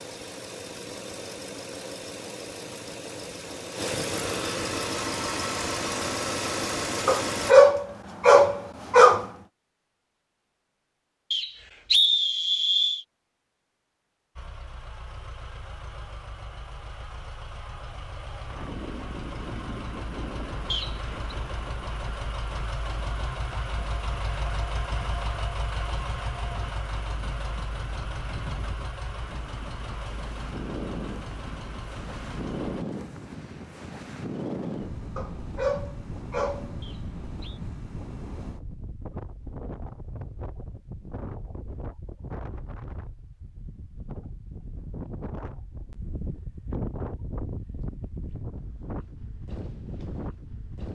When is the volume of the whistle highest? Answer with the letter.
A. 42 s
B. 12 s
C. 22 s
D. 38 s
B.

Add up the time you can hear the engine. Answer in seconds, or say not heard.
26 s.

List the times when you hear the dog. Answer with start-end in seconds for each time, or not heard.
7.0-9.2, 35.1-36.8.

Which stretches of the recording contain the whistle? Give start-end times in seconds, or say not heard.
11.3-13.1, 20.7-21.1, 36.8-37.6.